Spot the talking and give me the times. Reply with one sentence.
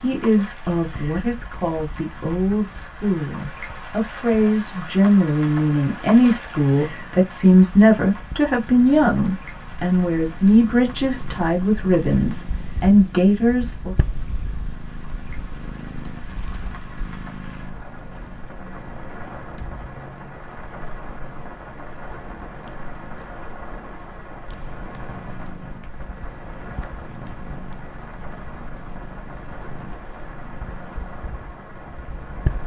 You can hear the talking from 0.0 to 13.9 s.